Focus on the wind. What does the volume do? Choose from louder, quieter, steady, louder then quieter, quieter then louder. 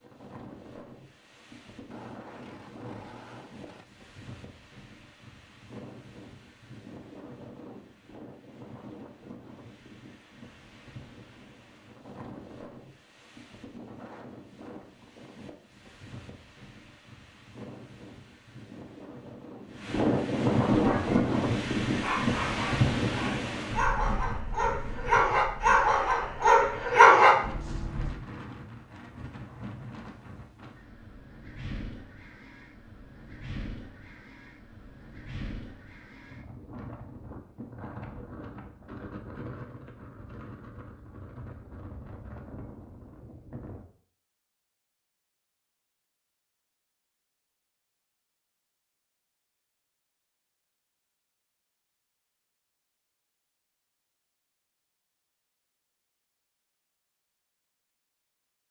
louder then quieter.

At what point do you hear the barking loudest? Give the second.
27 s.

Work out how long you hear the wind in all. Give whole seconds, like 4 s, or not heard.
44 s.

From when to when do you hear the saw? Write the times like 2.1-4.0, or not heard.
1.9-3.9.